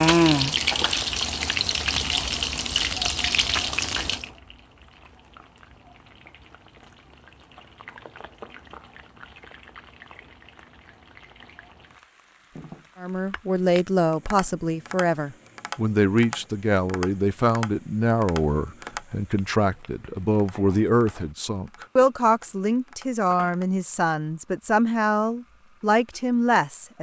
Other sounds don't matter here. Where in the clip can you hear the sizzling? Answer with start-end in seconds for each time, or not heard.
0.0-26.9.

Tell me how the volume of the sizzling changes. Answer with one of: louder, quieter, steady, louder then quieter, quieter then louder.
quieter.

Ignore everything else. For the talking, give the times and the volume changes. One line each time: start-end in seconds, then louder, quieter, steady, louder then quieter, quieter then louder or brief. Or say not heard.
13.0-26.9 steady.